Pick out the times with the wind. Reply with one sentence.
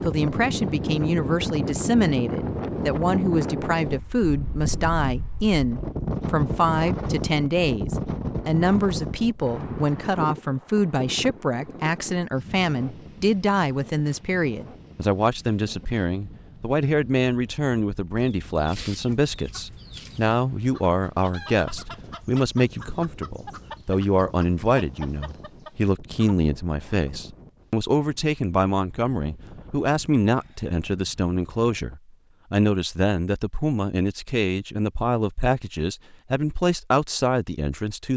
You can hear the wind from 0.0 to 32.0 s.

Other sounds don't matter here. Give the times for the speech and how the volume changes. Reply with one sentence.
You can hear the speech from 0.0 to 38.1 s, at a steady volume.